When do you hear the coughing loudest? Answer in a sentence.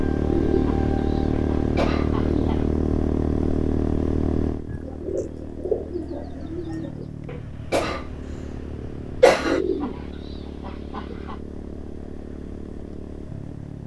The volume of the coughing peaks at 9 seconds.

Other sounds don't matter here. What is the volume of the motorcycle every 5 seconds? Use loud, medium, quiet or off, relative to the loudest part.
loud, quiet, quiet.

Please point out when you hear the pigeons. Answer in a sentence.
You can hear the pigeons from 0.2 to 2.7 s, from 4.7 to 7.0 s and from 9.3 to 11.4 s.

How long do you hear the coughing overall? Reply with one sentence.
The coughing can be heard for 3 seconds in total.